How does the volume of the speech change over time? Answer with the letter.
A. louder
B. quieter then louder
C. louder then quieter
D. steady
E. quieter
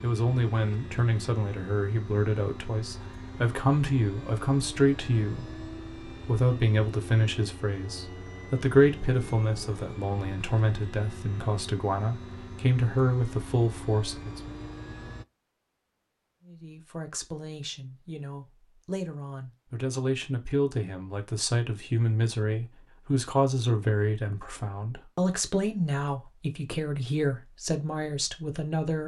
D.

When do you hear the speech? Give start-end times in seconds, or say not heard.
0.0-5.6, 6.2-14.6, 16.4-29.0.